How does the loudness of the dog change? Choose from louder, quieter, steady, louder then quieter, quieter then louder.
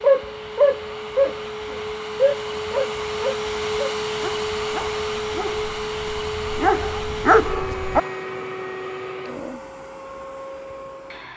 quieter then louder.